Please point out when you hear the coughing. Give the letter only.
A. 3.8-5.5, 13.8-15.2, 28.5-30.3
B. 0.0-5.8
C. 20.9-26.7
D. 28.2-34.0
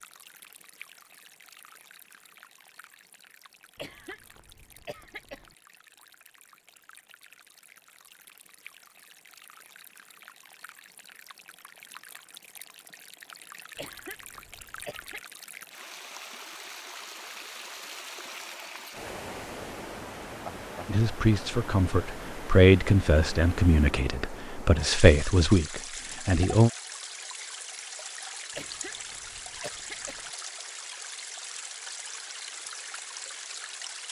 A.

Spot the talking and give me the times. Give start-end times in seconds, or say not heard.
20.9-26.7.